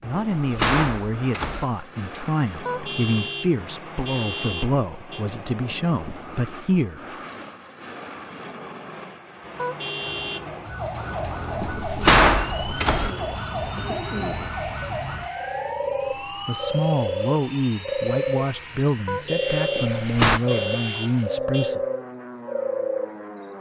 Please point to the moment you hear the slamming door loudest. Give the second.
12 s.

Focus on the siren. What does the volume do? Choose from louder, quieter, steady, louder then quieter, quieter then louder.
steady.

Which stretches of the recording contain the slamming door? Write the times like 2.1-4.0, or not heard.
0.2-1.6, 11.6-13.2, 19.8-20.4.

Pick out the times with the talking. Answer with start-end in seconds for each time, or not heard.
0.0-7.0, 16.4-21.8.